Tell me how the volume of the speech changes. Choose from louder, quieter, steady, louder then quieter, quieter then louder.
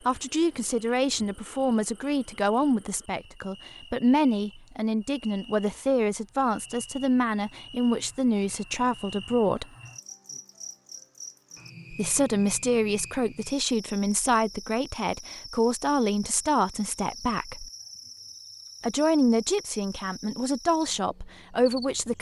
steady.